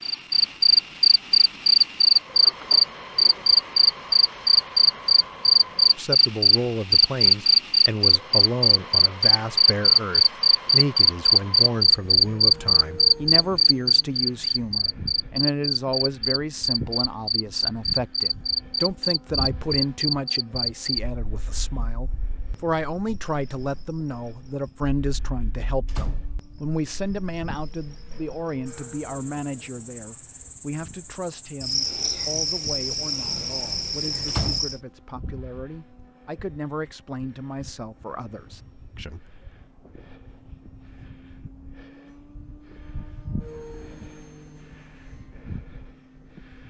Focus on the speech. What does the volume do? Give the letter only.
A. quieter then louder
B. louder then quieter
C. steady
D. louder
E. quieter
E.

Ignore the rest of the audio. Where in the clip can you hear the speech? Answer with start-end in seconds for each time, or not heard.
6.0-39.4.